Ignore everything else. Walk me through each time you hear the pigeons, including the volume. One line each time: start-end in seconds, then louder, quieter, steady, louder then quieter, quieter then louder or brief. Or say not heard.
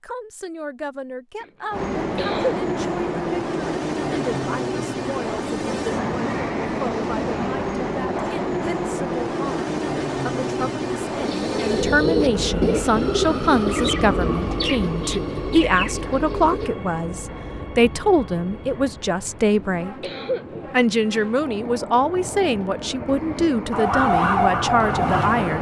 11.2-16.7 quieter.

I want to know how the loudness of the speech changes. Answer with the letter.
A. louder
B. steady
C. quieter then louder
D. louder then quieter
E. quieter
A.